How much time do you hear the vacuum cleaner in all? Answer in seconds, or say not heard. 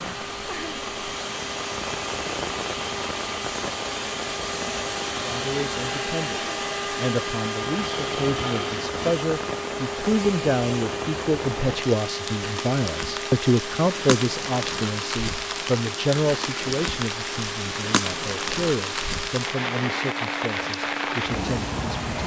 22 s.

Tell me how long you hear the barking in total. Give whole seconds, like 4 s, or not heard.
not heard.